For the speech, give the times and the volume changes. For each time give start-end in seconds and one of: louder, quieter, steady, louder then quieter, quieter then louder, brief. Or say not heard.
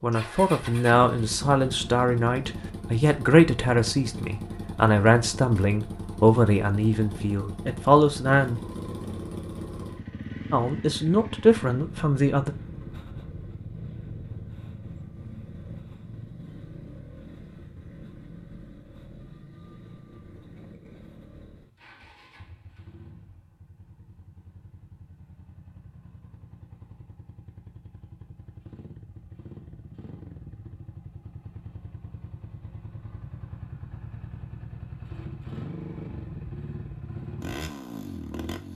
0.0-8.6 steady
10.5-12.6 brief.